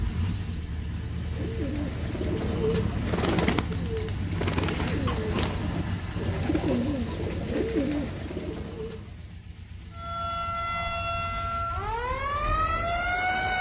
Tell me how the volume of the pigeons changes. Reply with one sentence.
The volume of the pigeons stays about the same.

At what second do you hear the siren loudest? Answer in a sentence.
The volume of the siren peaks at 13 seconds.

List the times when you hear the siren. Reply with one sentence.
The siren can be heard from 9.9 to 13.5 s.